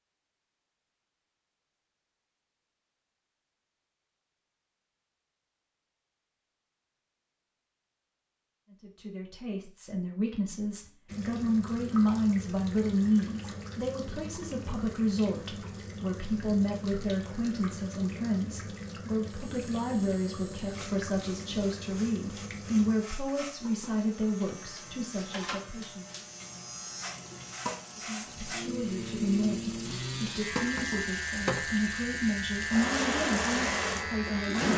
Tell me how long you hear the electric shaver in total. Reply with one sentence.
You can hear the electric shaver for 15 seconds altogether.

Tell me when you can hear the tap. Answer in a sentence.
The tap can be heard from 11.1 to 34.7 s.